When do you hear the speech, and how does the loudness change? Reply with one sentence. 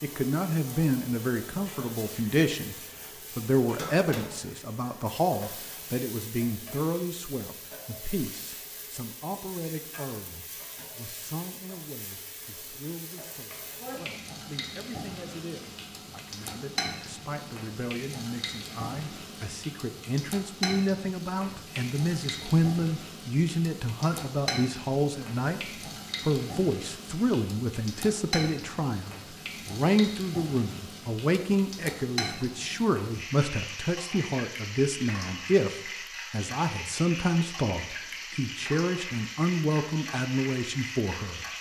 The speech can be heard from 0.0 to 25.6 s, getting quieter then louder; and from 26.2 to 41.5 s, at a steady volume.